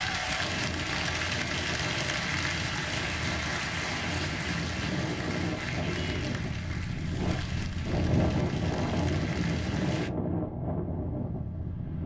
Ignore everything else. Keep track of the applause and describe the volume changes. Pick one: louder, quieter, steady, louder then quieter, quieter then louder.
quieter.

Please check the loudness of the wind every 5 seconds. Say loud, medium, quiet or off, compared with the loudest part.
medium, loud, loud.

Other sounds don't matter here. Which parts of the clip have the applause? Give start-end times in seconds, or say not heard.
0.0-10.1.